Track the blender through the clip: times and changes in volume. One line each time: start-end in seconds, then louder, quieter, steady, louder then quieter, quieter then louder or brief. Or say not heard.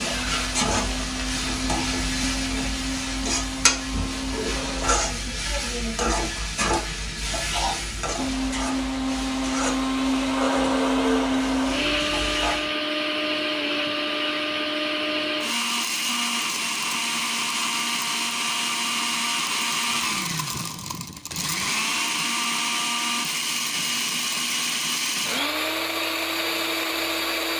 0.0-5.0 steady
8.2-27.5 steady.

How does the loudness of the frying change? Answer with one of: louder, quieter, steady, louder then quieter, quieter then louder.
quieter.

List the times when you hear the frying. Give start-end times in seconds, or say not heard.
0.0-12.7.